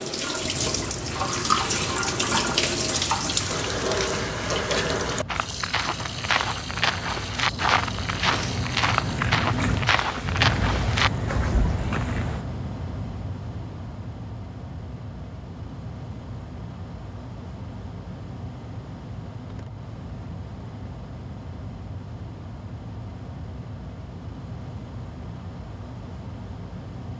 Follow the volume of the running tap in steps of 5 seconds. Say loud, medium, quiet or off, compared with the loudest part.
loud, medium, quiet, off, off, off.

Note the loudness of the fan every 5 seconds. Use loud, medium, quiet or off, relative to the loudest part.
medium, loud, loud, medium, medium, medium.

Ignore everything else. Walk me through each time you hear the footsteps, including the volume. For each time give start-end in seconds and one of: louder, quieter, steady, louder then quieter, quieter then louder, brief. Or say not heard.
5.2-12.4 steady.